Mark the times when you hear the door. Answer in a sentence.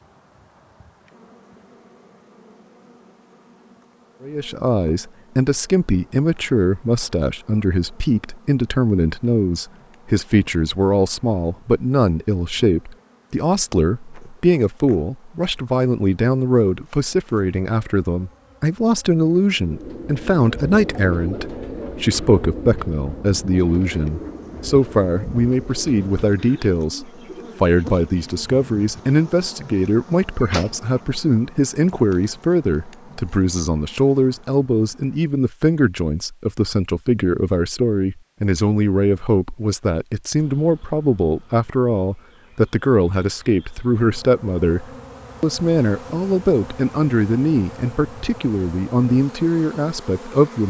The door can be heard from 30.4 to 31.0 s.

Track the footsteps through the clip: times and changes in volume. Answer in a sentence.
You can't hear the footsteps here.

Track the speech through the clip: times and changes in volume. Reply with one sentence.
You can hear the speech from 4.2 to 50.6 s, at a steady volume.